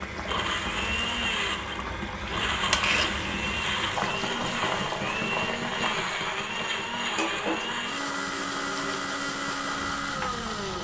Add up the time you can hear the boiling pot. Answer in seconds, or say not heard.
11 s.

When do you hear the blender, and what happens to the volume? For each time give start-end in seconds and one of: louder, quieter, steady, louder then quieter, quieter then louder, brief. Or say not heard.
0.1-10.8 steady.